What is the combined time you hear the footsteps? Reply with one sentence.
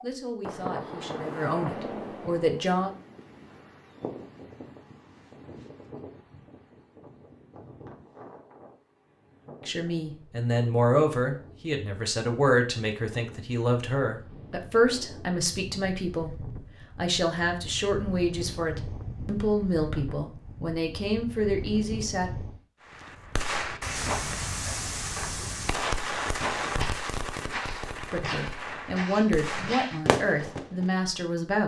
The footsteps can be heard for 6 seconds in total.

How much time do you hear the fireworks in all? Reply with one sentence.
The fireworks can be heard for 8 seconds in total.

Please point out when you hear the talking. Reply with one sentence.
The talking can be heard from 0.0 to 3.0 s, from 9.7 to 22.3 s and from 27.9 to 31.6 s.